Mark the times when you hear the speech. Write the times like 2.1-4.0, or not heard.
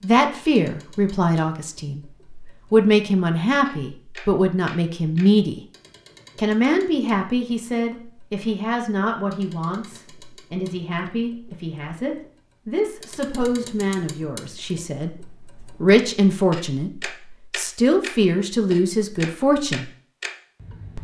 0.0-5.6, 6.3-19.9.